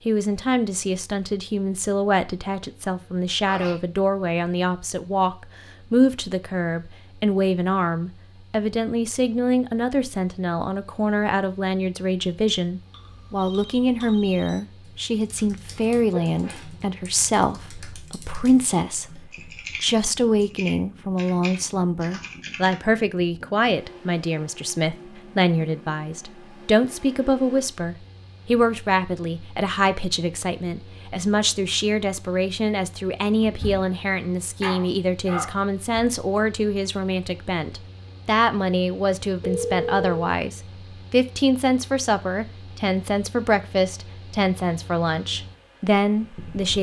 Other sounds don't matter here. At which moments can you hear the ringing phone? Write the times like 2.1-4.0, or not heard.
13.3-14.6, 39.4-40.1.